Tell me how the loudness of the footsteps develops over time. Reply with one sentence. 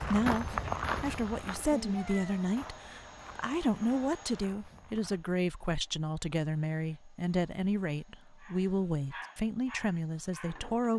The loudness of the footsteps goes down.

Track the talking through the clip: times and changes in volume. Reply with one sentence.
The talking can be heard from 0.0 to 10.9 s, at a steady volume.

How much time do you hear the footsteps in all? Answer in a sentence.
The footsteps can be heard for 5 seconds in total.